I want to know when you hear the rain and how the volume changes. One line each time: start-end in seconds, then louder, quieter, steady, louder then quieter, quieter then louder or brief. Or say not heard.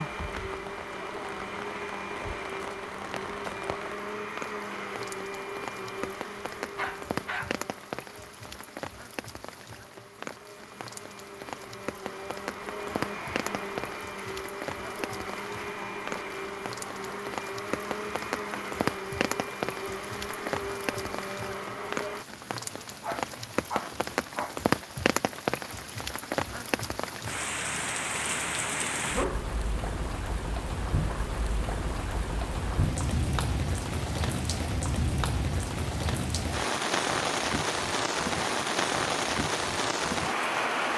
0.0-40.9 louder.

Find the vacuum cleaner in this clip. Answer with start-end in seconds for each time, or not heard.
0.0-22.2.